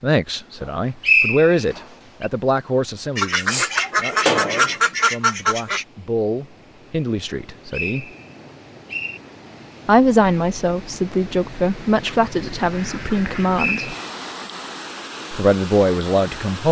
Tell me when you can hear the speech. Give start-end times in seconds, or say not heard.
0.0-8.1, 9.8-13.9, 15.3-16.6.